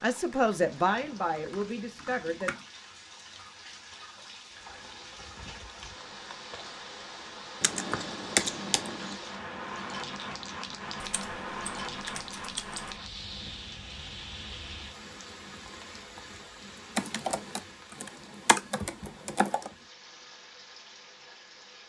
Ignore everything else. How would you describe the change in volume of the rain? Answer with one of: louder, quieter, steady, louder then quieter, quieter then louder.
louder then quieter.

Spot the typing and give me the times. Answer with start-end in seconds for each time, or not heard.
0.3-2.6, 7.6-9.2, 11.0-12.9, 16.9-19.7.